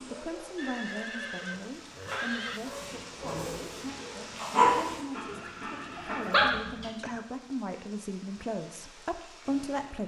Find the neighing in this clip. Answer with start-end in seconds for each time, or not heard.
0.6-2.6, 5.3-7.2.